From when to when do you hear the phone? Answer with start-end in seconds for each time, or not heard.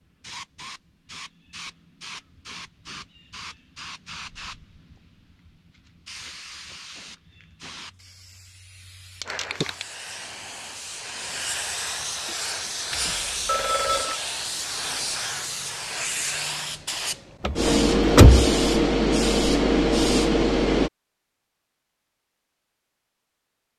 12.9-14.2.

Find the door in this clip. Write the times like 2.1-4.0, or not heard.
17.4-18.5.